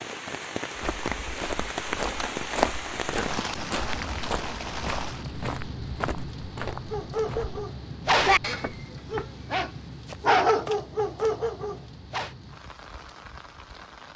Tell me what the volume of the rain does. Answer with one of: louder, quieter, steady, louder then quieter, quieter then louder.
quieter.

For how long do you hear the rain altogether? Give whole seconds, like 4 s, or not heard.
14 s.